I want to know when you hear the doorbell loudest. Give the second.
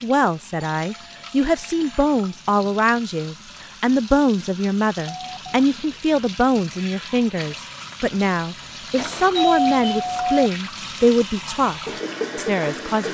10 s.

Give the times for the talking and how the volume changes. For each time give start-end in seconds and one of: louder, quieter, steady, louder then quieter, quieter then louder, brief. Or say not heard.
0.0-13.0 steady.